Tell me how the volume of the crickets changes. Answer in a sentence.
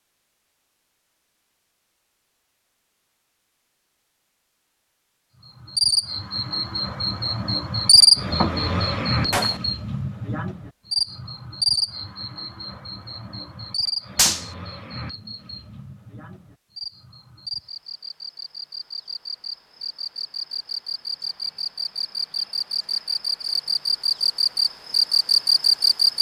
The loudness of the crickets goes down, then up.